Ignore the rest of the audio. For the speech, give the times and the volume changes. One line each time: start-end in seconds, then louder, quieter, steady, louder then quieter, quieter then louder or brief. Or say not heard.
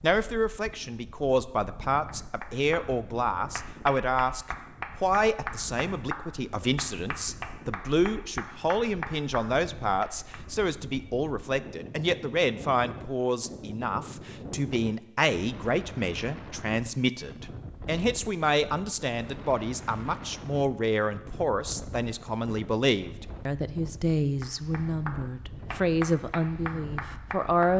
0.0-27.7 steady.